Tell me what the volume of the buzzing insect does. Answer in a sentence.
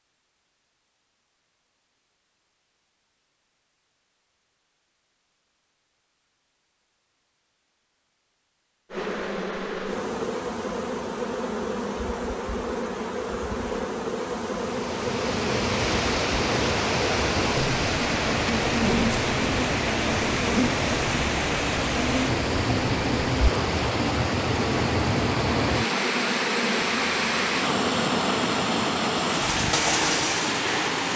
The loudness of the buzzing insect stays about the same.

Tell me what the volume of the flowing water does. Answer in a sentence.
The volume of the flowing water stays about the same.